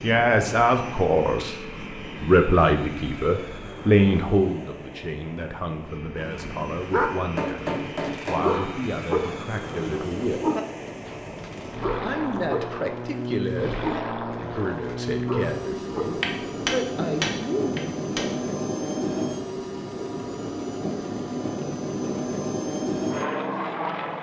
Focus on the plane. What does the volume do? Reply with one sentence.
The volume of the plane goes up.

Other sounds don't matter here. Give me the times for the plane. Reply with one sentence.
You can hear the plane from 0.0 to 24.1 s.